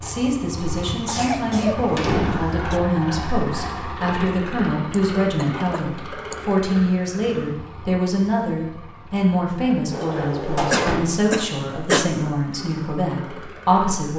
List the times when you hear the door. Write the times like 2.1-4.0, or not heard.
0.8-2.5, 9.9-11.1.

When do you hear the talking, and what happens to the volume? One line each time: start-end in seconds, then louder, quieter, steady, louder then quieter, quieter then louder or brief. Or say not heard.
0.0-14.1 steady.